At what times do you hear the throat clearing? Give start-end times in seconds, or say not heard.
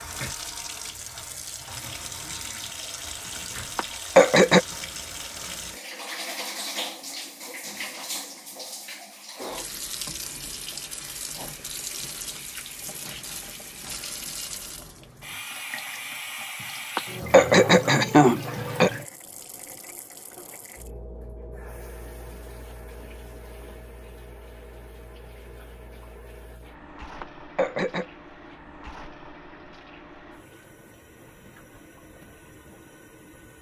3.8-4.6, 16.9-18.9, 27.2-28.1.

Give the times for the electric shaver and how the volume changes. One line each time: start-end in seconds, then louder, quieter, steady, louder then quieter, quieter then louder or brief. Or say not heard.
not heard.